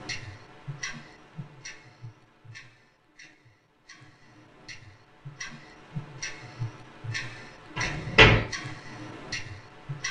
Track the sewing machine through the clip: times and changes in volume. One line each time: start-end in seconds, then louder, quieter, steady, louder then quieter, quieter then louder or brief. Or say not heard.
not heard.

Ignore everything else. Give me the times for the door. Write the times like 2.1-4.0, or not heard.
7.8-8.4.